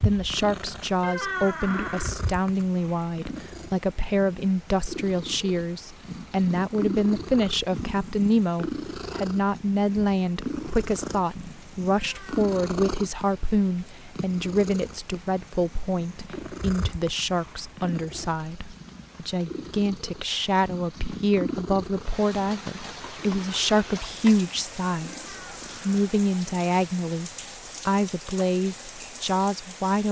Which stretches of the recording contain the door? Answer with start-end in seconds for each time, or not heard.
1.0-2.1, 11.9-12.4, 25.1-26.0.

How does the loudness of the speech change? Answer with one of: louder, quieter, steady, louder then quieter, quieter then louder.
steady.